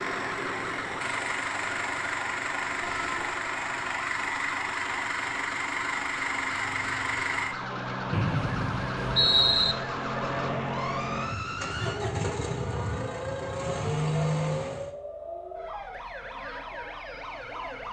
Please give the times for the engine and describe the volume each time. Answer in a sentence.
You can hear the engine from 0.0 to 14.9 s, at a steady volume.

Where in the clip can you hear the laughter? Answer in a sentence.
You can't hear the laughter here.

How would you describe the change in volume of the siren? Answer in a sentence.
The loudness of the siren stays about the same.